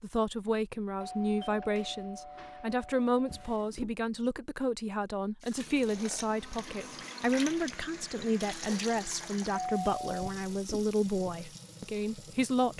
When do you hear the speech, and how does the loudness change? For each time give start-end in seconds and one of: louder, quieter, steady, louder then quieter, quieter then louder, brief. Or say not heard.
0.0-12.7 steady.